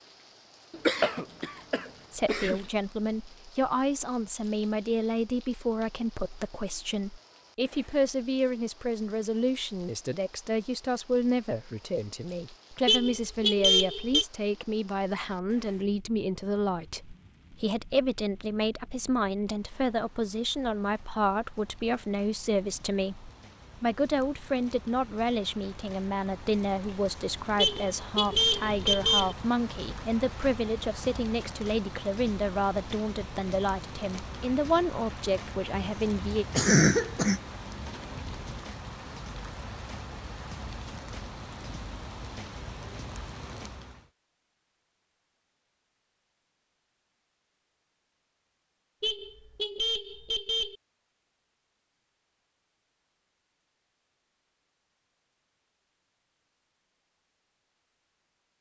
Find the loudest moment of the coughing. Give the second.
37 s.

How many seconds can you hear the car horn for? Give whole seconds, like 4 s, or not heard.
5 s.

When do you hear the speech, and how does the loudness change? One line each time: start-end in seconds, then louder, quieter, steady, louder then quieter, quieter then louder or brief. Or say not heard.
2.1-36.5 steady.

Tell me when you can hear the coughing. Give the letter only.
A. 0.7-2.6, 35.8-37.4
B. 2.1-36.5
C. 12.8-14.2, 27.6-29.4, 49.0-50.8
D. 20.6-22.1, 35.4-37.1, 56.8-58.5
A.